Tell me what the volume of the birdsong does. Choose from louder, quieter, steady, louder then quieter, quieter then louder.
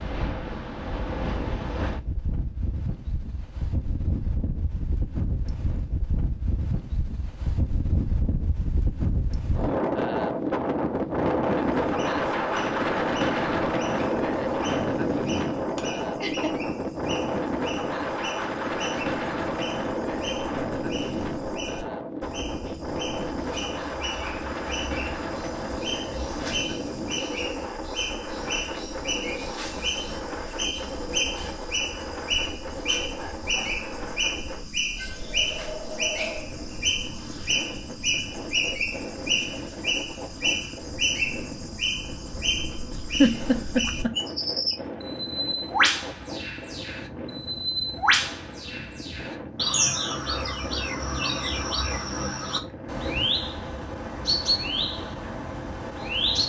louder.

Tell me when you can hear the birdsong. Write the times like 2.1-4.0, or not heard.
11.8-56.4.